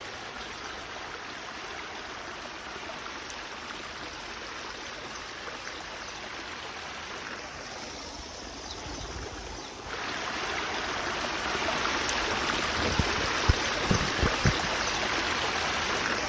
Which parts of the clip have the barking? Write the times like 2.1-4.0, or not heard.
12.2-14.7.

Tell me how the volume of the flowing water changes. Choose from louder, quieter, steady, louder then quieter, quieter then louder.
louder.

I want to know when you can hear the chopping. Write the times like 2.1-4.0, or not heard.
not heard.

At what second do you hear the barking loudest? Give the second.
14 s.